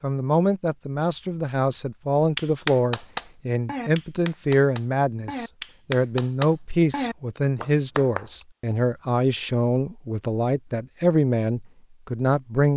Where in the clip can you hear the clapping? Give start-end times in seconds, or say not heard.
2.4-8.4.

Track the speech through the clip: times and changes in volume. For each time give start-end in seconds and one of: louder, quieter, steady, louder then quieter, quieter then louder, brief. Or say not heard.
0.0-12.7 steady.